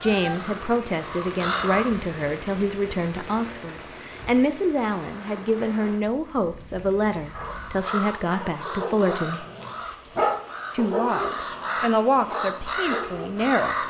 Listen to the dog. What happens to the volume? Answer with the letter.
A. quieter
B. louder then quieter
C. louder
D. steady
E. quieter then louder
B.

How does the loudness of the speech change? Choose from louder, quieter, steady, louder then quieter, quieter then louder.
steady.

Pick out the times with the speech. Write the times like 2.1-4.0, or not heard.
0.0-9.4, 10.7-13.8.